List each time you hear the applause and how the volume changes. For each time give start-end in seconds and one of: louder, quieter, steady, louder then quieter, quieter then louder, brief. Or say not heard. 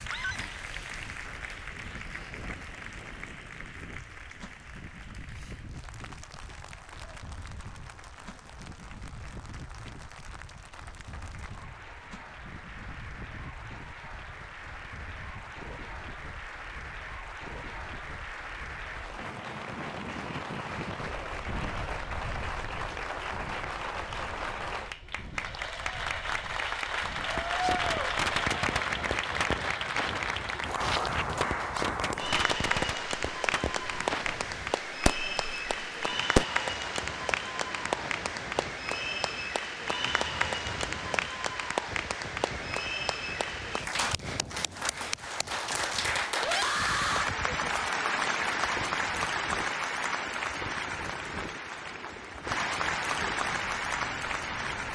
0.0-54.9 louder.